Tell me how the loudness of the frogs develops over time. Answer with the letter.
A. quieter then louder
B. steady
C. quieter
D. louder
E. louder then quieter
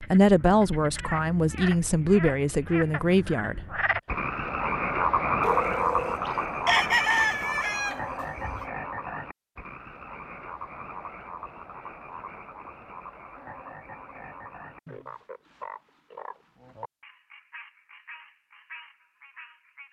E.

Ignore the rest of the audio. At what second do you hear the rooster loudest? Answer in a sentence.
The volume of the rooster peaks at 7 seconds.